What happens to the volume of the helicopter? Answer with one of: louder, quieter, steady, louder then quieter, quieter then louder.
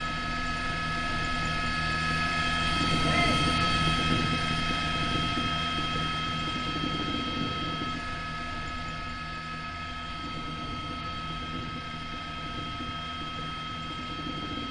quieter.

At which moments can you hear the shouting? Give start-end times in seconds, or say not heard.
3.0-3.5.